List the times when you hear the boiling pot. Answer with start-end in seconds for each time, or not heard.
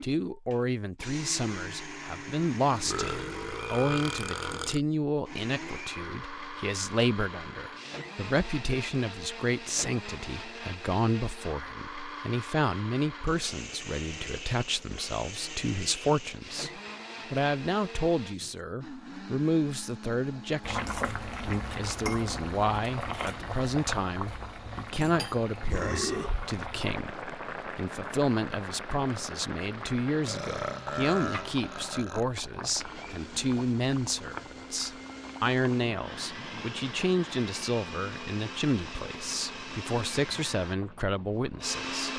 20.6-42.1.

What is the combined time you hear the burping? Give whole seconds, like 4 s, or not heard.
5 s.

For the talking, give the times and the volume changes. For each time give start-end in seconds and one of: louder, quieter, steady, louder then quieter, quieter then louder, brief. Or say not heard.
0.0-42.1 steady.